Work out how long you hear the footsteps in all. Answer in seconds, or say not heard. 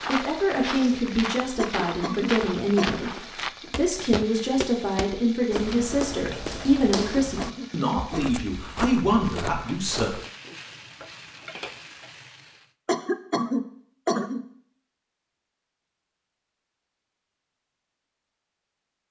10 s.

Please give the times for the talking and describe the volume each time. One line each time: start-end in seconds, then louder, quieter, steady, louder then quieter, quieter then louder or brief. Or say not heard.
0.1-10.1 steady.